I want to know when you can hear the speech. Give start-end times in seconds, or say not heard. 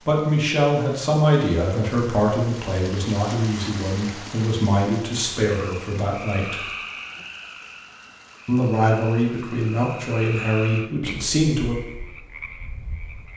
0.0-6.7, 8.4-11.8.